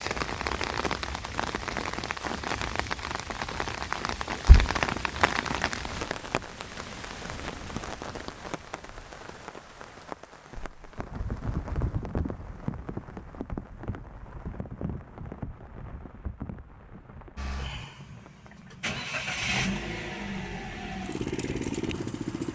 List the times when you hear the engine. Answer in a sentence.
The engine can be heard from 17.4 to 22.5 s.